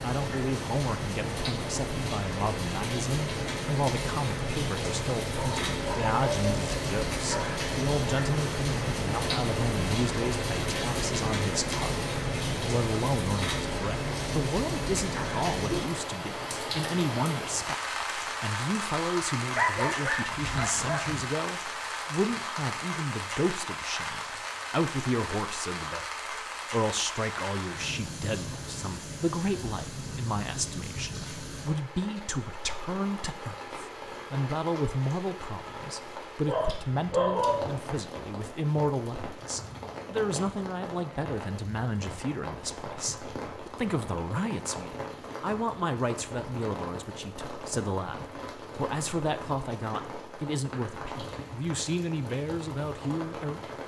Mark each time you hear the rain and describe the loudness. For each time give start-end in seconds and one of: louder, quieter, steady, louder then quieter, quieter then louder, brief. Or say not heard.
0.0-53.8 quieter.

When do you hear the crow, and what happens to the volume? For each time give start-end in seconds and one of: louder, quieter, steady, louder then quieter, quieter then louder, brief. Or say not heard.
not heard.